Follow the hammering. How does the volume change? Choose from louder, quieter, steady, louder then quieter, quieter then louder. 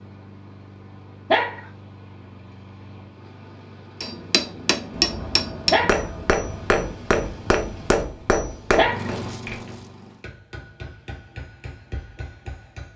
quieter.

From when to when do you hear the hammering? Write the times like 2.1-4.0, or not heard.
4.0-12.9.